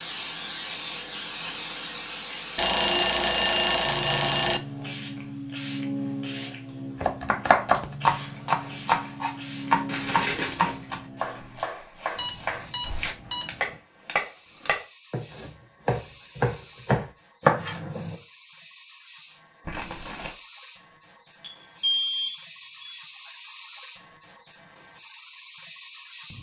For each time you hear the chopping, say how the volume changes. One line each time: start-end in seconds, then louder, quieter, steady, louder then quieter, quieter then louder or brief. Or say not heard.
7.0-18.1 quieter then louder.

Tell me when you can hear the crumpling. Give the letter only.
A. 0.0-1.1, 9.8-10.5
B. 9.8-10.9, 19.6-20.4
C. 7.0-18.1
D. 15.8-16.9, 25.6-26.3
B.